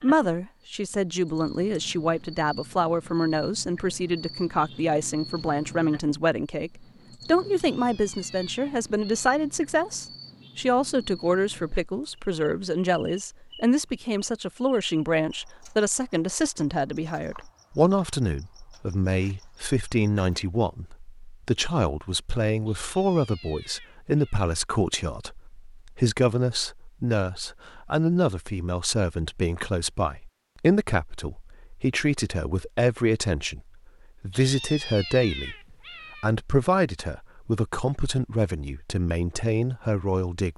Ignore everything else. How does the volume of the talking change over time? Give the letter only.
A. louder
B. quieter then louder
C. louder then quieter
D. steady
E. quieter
D.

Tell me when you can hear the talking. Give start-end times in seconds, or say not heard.
0.0-33.6, 34.2-40.5.